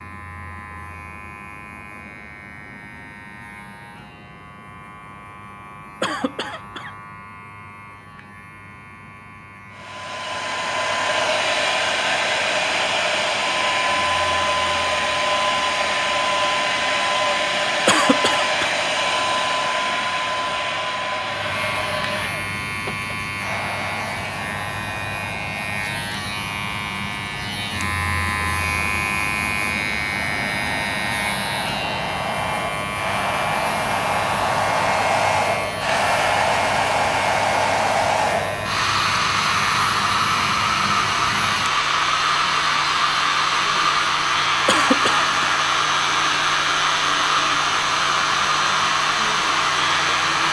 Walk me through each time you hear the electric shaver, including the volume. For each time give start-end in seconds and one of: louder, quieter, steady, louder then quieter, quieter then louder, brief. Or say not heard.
0.0-50.4 louder.